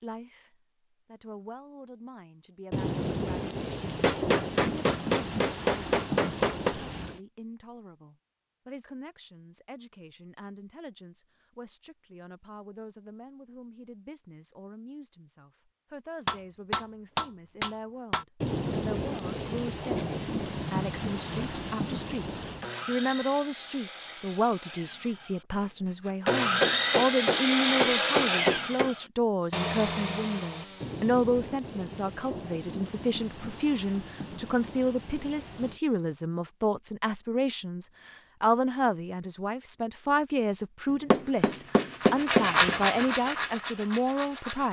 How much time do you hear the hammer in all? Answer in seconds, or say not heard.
9 s.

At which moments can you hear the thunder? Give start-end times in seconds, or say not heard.
2.7-7.2, 18.4-22.7, 30.8-35.8.